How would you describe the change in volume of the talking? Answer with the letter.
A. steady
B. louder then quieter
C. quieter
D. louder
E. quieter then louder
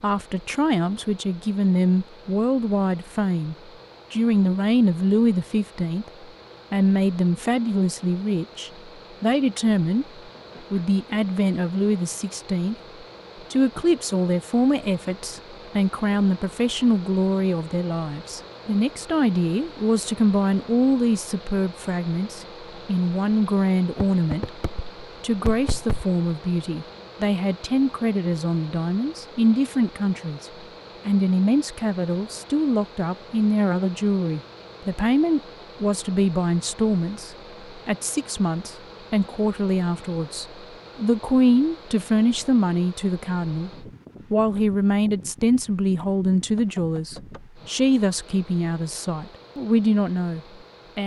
A.